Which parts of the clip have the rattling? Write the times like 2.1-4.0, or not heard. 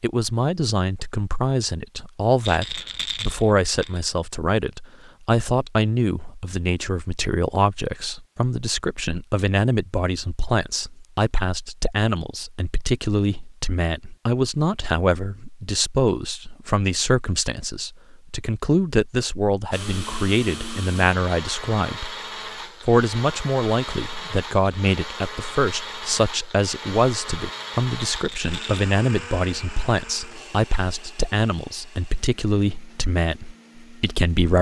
2.4-4.0, 28.1-28.9.